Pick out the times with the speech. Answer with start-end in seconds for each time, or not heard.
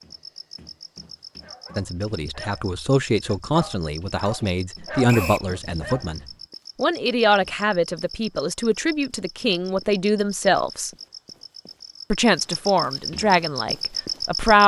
1.8-10.9, 12.1-14.6.